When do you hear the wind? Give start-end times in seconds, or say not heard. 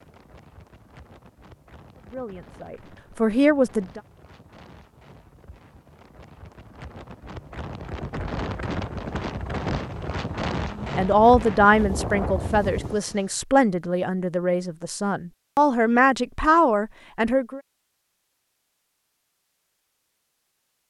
0.0-13.2.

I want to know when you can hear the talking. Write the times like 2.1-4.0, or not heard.
1.9-4.0, 10.8-17.6.